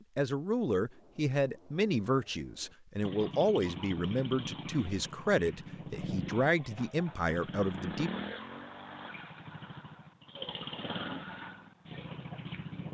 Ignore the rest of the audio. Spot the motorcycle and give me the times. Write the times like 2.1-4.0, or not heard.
3.0-12.9.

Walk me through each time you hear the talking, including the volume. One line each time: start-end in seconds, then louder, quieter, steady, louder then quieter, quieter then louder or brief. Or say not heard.
0.1-8.1 steady.